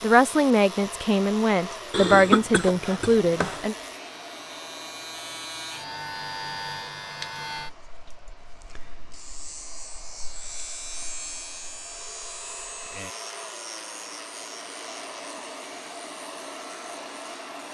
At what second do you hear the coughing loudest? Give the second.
2 s.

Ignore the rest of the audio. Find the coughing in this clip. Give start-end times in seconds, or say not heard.
1.9-3.6.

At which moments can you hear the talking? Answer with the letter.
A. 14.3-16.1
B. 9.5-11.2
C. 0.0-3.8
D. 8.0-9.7
C.